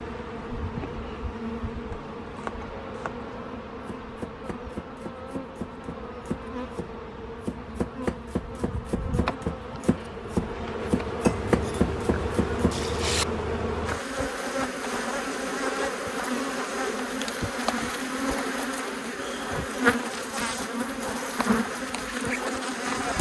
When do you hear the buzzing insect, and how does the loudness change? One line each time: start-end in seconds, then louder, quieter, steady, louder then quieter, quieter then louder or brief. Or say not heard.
0.0-23.1 louder.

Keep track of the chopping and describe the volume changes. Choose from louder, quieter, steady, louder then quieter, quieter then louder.
louder.